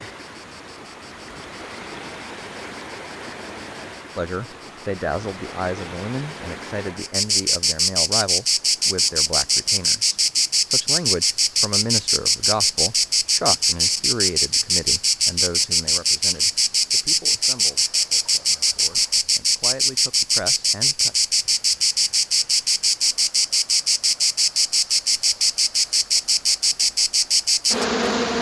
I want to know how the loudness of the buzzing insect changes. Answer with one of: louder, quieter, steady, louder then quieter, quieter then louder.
louder.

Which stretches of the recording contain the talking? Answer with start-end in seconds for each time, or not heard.
4.2-21.1.